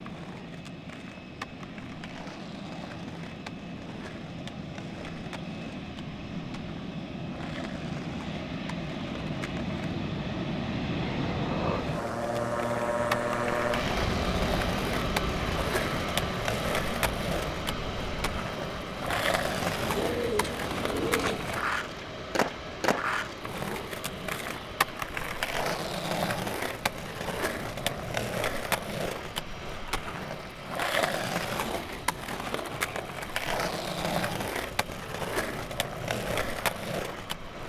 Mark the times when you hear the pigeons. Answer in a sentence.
You can hear the pigeons from 19.8 to 21.6 s.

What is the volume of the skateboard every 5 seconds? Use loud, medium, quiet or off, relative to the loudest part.
quiet, quiet, loud, loud, loud, loud, loud, loud.